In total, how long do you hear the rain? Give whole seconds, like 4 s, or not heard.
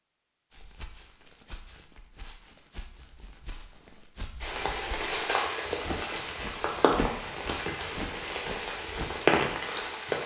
6 s.